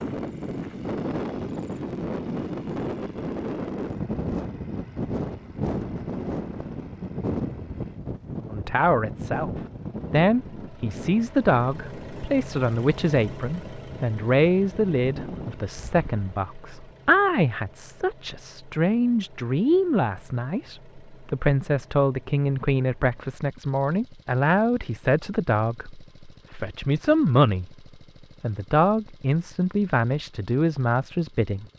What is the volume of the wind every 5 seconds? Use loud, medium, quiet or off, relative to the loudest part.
loud, loud, medium, medium, off, off, off.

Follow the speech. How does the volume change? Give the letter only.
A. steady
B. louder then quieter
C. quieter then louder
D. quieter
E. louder
A.